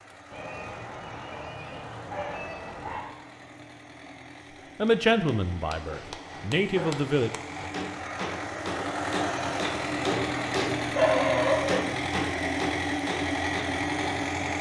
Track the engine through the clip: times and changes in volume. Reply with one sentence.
The engine can be heard from 0.0 to 14.5 s, getting louder.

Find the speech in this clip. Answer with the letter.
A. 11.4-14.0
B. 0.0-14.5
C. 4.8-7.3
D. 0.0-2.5
C.